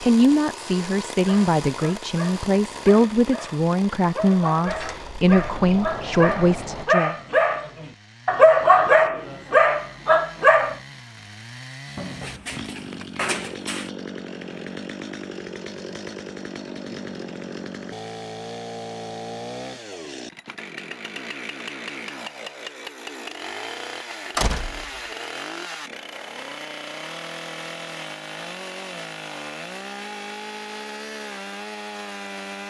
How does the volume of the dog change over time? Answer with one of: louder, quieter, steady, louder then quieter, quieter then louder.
louder.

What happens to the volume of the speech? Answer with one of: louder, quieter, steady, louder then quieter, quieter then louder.
steady.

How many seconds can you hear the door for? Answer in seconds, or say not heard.
5 s.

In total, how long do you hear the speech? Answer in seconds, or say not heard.
7 s.